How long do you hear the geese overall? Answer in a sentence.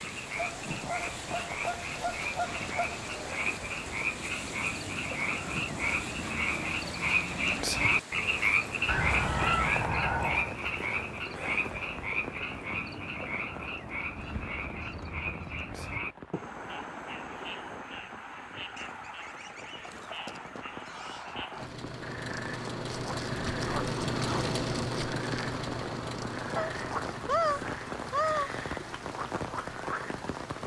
The geese can be heard for 11 seconds in total.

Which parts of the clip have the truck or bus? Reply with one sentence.
The truck or bus can be heard from 21.5 to 30.6 s.